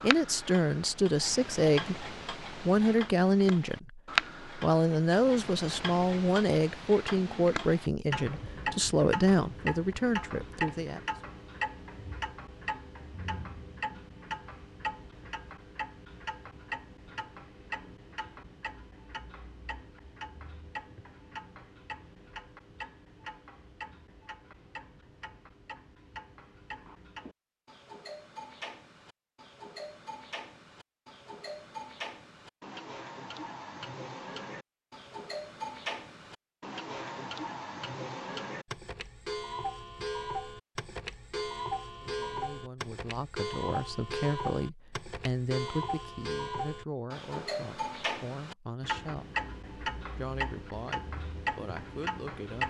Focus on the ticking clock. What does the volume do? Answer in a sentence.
The volume of the ticking clock goes down, then up.